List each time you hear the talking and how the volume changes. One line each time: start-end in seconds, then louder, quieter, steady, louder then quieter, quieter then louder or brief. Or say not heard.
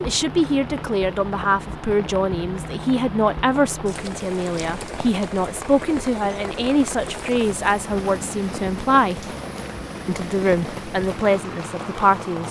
0.0-9.2 steady
10.1-12.4 brief.